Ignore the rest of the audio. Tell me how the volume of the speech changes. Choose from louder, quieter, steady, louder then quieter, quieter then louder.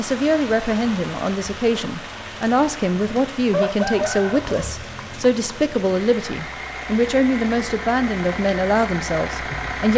steady.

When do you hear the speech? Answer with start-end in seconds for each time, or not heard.
0.0-9.9.